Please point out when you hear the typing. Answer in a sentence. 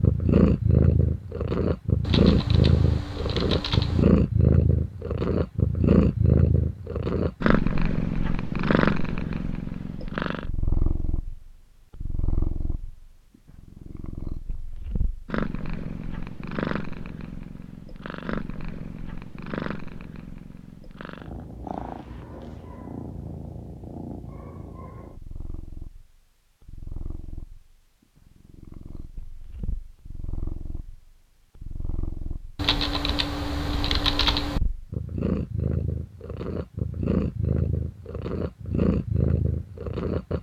The typing can be heard from 2.0 to 4.0 s and from 32.5 to 34.6 s.